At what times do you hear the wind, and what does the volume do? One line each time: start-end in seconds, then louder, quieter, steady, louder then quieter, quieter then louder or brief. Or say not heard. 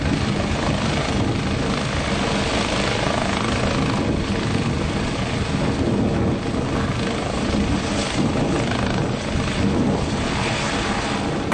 0.0-11.4 steady.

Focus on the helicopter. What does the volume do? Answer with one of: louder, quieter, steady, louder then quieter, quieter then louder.
steady.